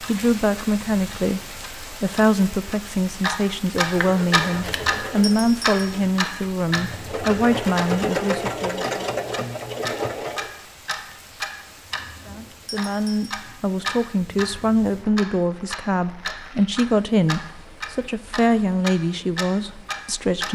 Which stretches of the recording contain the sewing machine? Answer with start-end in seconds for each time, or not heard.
4.0-10.5.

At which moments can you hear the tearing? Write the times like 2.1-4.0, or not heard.
not heard.